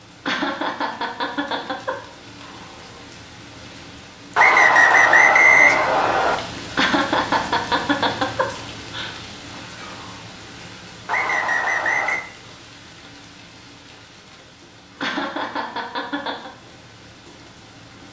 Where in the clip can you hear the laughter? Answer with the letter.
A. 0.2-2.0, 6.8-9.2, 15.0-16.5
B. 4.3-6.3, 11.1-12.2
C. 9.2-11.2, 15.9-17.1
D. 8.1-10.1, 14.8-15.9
A.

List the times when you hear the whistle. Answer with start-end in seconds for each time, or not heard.
4.3-6.3, 11.1-12.2.